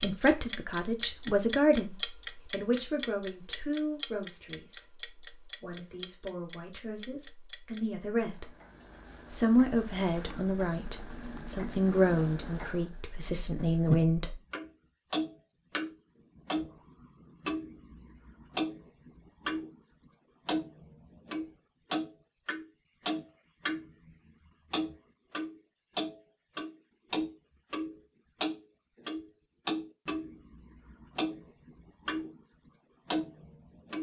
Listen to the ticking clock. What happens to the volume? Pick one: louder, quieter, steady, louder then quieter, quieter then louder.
quieter then louder.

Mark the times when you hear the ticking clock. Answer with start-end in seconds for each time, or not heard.
0.0-19.8, 20.4-33.9.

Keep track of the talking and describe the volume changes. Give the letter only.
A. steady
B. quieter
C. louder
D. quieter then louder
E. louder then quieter
D.